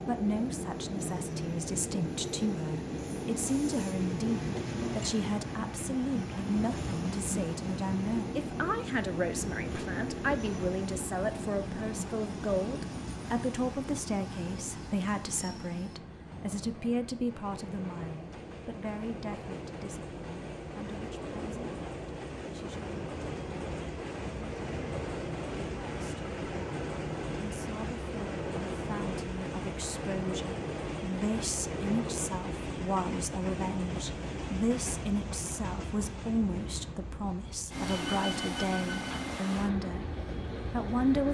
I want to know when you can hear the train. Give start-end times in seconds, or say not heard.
0.0-41.2.